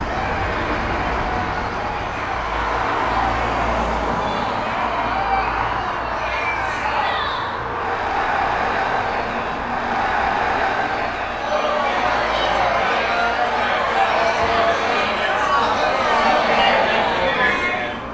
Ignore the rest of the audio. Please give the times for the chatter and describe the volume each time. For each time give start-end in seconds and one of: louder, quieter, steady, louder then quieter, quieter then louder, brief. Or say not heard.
0.0-18.1 louder.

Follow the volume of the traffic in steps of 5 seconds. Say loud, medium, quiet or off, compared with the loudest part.
loud, loud, medium, medium.